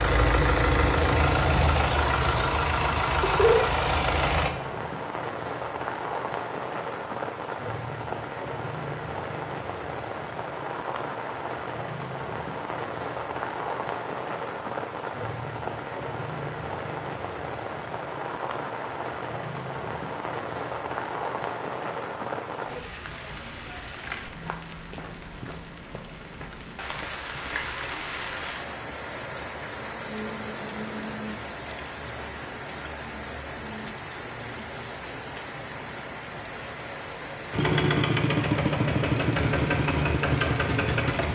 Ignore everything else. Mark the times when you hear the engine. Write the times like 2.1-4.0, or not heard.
0.0-4.5, 37.5-41.3.